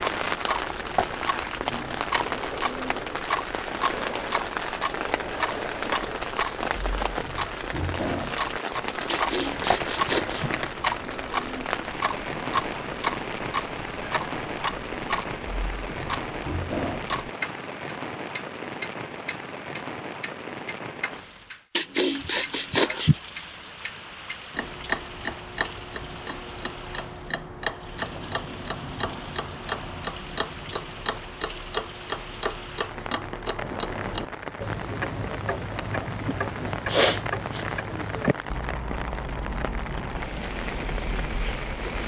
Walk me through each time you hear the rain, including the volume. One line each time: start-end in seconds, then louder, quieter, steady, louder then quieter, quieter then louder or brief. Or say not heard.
0.0-42.0 quieter then louder.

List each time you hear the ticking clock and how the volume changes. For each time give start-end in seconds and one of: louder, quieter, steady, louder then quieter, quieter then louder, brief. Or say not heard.
0.2-42.0 steady.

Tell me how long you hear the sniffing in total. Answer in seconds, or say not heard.
4 s.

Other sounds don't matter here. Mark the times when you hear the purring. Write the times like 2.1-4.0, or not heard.
not heard.